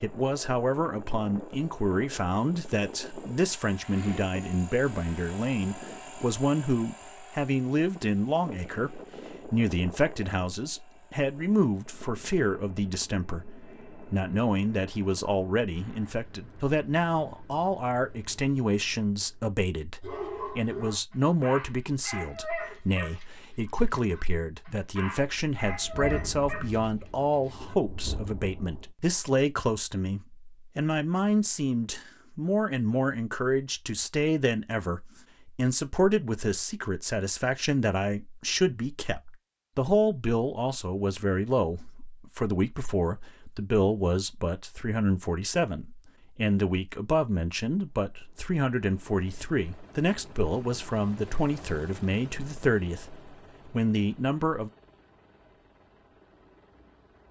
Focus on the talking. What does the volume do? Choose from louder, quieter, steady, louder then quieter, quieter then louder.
steady.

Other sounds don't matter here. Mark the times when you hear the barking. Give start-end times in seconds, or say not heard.
20.0-27.8.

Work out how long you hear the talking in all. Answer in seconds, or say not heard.
55 s.